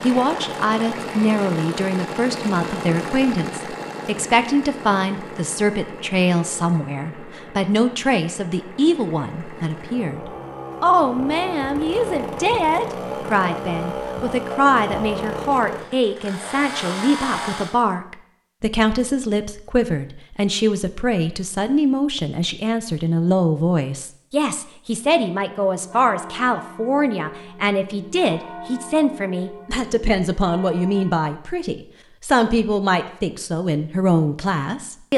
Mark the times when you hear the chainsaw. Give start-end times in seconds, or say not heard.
0.0-17.8.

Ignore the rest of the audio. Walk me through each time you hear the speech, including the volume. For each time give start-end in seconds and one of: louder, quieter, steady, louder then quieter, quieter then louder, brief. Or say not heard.
0.0-35.1 steady.